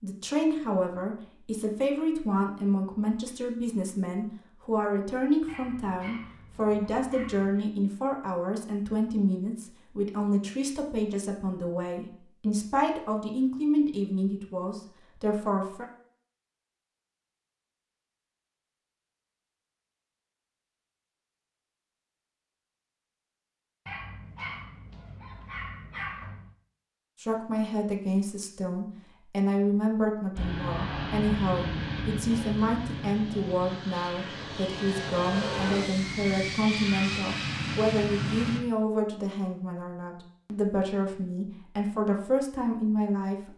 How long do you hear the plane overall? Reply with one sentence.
The plane can be heard for 8 seconds in total.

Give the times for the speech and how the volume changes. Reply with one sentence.
You can hear the speech from 0.0 to 15.8 s, at a steady volume; and from 27.2 to 43.5 s, at a steady volume.